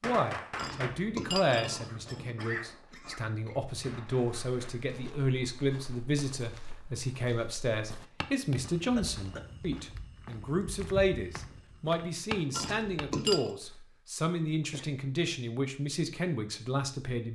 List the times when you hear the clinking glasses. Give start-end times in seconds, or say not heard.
0.6-2.4, 12.5-13.6.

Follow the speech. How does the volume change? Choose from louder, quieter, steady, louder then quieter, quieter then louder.
steady.